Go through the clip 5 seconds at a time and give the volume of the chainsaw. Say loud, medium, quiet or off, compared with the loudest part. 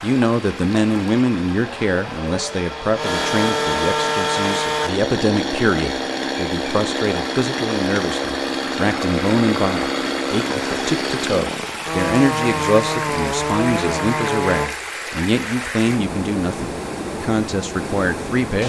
loud, loud, loud, off.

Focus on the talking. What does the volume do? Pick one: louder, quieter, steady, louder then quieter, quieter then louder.
steady.